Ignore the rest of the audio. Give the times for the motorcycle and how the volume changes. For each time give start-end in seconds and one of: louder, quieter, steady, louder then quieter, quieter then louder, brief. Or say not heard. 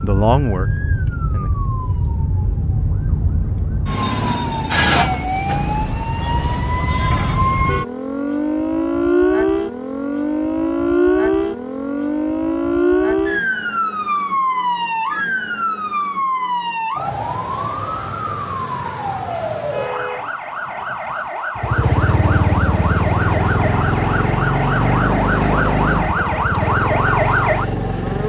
21.6-28.2 steady.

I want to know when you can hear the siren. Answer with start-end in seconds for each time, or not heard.
0.0-28.2.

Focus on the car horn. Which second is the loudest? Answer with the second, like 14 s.
20 s.